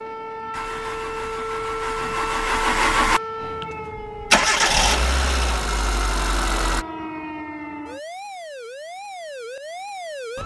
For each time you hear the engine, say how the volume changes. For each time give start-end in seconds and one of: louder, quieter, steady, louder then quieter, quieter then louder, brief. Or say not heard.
0.0-6.8 louder then quieter.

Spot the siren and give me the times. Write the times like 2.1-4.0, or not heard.
0.0-10.4.